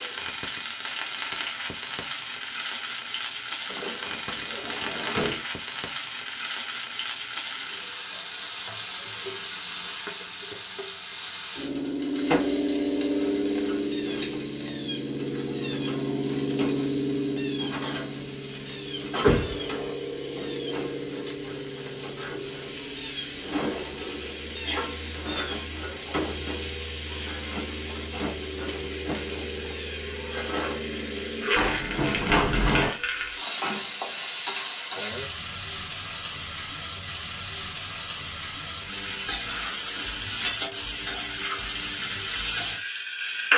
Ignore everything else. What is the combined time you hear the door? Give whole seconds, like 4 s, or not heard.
4 s.